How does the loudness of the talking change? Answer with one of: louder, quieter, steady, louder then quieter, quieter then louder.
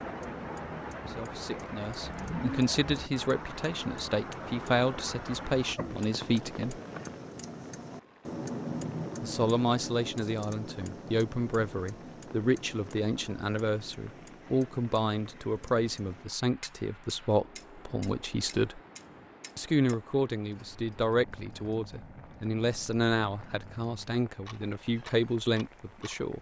steady.